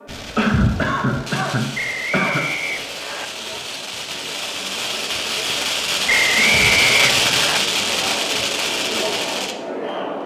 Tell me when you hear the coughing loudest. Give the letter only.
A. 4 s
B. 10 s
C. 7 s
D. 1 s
D.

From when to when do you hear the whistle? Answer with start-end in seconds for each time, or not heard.
1.8-3.3, 6.0-7.6.